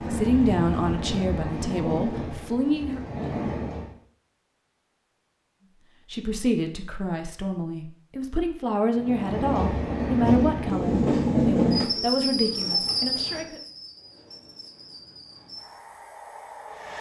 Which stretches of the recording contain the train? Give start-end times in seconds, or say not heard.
0.0-3.9, 9.0-16.9.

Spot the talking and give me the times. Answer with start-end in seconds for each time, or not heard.
0.0-3.0, 6.1-13.6.